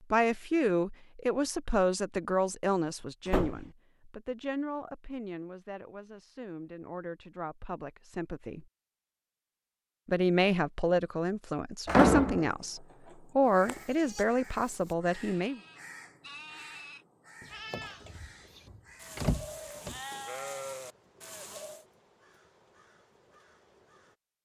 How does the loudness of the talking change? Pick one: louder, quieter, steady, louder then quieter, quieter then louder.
quieter then louder.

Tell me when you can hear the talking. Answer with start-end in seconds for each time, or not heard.
0.1-8.7, 10.1-15.6.